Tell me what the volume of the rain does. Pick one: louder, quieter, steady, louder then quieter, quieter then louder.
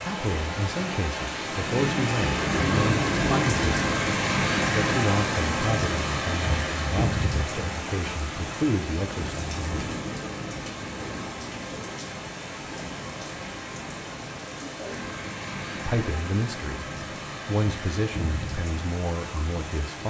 quieter.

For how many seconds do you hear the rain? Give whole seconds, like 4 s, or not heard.
20 s.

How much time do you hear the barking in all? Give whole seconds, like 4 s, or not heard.
not heard.